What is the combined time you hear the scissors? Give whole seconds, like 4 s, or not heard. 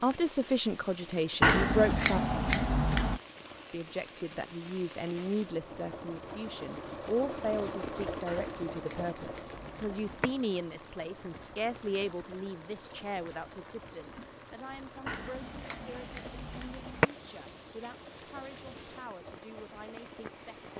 6 s.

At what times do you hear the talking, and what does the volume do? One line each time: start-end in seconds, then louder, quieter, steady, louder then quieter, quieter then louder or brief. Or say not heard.
0.0-2.2 brief
3.7-20.7 quieter.